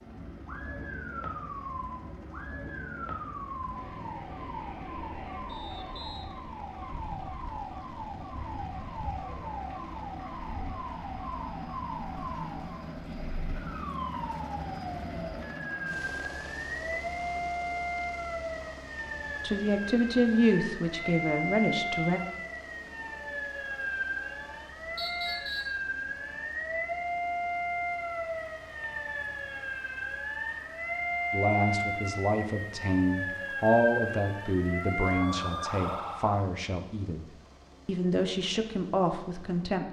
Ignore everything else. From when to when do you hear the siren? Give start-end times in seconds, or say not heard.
0.0-36.5.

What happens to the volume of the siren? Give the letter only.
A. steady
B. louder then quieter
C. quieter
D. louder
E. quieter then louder
D.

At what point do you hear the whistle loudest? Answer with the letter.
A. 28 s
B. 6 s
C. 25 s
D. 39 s
C.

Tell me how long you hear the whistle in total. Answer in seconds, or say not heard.
2 s.